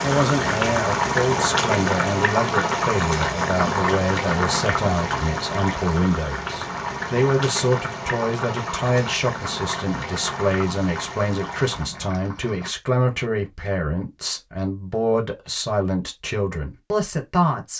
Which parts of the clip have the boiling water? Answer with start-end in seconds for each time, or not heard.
0.0-12.7.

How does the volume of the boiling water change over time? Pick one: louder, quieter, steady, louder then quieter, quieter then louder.
quieter.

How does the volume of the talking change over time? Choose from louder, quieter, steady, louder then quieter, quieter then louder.
steady.